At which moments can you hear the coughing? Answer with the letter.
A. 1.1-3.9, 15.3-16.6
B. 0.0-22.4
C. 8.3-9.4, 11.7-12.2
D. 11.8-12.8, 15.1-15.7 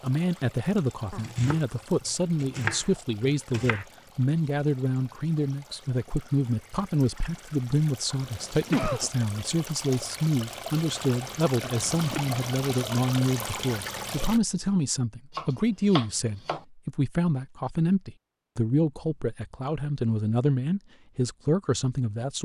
C.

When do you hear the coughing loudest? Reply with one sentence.
The loudest moment of the coughing is at 9 seconds.